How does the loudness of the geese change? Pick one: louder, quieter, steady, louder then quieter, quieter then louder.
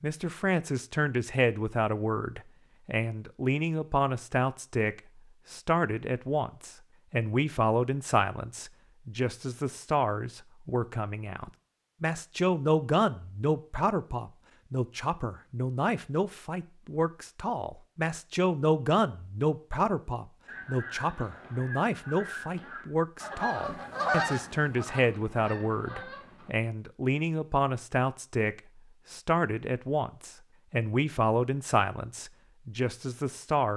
louder then quieter.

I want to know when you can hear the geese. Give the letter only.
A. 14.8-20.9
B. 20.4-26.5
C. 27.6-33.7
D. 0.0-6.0
B.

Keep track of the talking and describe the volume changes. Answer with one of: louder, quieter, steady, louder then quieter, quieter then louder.
steady.